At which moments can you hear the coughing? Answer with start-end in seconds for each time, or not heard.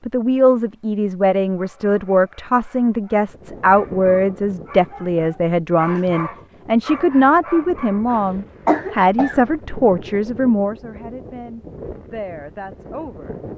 8.1-9.4.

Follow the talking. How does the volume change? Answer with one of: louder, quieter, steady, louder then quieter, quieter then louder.
quieter.